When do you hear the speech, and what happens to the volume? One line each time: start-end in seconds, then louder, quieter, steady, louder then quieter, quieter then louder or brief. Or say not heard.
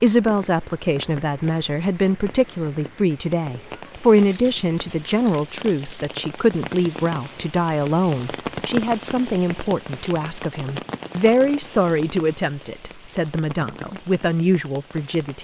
0.0-15.3 steady.